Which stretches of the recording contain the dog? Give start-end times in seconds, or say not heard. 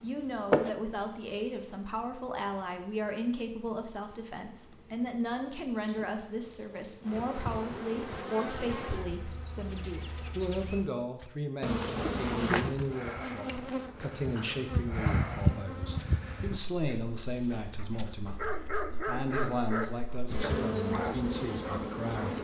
15.9-22.3.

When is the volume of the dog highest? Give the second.
19 s.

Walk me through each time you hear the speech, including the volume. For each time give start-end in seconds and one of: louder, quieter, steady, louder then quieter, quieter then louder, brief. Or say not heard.
0.0-22.3 steady.